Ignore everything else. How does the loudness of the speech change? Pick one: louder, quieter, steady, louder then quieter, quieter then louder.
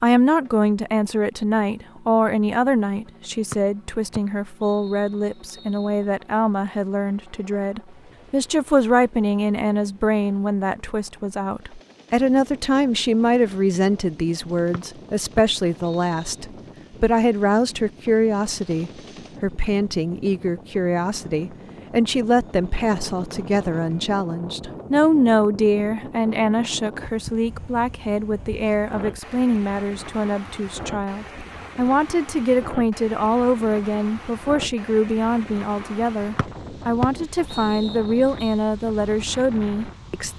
steady.